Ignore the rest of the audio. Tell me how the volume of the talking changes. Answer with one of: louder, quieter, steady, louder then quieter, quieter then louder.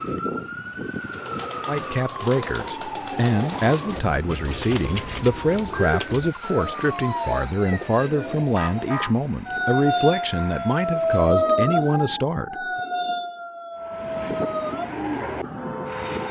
steady.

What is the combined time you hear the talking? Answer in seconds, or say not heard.
11 s.